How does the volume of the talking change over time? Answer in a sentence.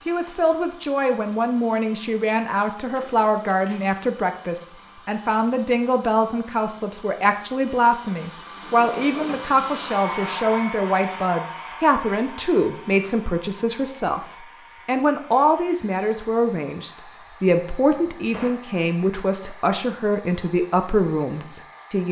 The volume of the talking stays about the same.